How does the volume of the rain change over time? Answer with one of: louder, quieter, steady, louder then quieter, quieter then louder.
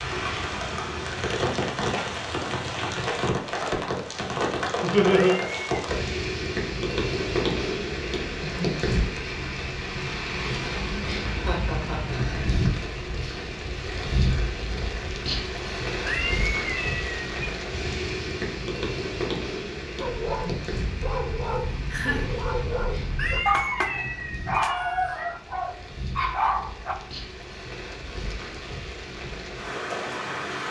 quieter.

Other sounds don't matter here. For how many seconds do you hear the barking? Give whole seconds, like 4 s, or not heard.
7 s.